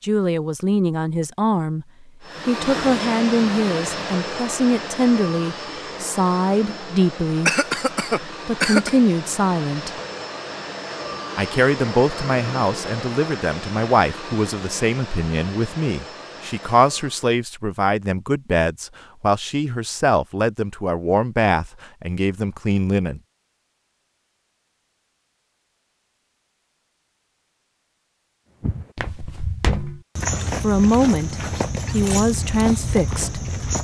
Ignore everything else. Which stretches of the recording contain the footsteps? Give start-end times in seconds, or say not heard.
28.6-33.8.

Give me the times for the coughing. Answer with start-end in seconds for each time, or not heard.
7.5-8.9.